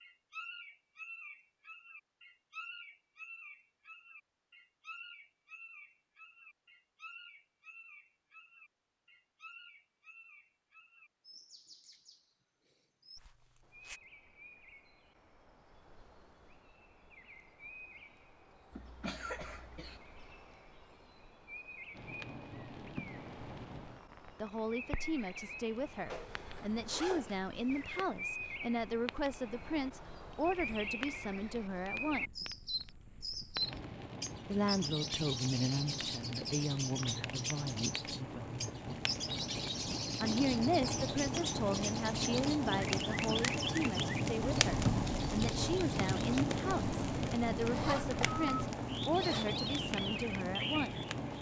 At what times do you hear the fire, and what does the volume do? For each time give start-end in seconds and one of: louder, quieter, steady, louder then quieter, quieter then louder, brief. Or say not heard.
21.9-51.3 louder.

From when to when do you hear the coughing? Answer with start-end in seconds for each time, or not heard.
18.7-20.0.